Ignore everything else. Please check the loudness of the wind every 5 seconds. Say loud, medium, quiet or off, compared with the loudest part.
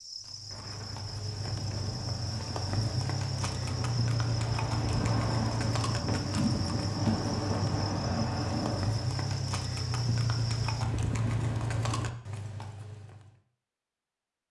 medium, loud, off.